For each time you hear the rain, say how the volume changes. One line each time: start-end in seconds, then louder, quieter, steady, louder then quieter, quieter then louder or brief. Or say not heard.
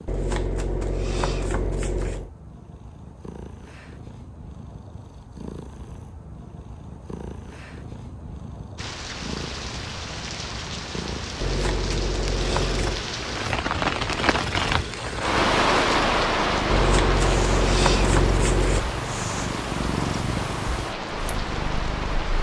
8.8-22.3 louder then quieter.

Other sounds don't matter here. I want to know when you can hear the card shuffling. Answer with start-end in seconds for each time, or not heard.
0.1-2.3, 11.4-13.1, 16.7-18.9.